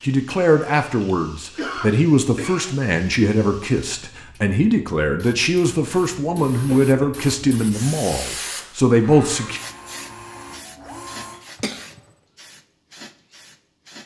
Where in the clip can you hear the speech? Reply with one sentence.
The speech can be heard from 0.0 to 9.6 s.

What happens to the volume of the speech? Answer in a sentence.
The volume of the speech stays about the same.